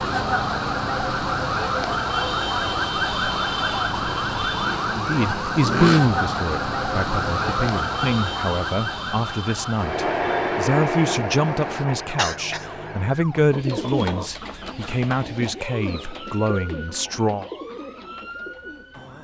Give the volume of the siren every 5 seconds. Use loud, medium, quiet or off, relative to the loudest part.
loud, loud, quiet, quiet.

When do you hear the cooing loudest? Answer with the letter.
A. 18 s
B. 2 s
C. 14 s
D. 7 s
C.